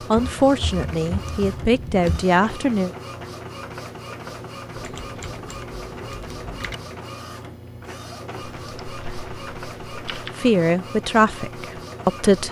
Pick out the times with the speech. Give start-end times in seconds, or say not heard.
0.1-2.9, 10.3-12.4.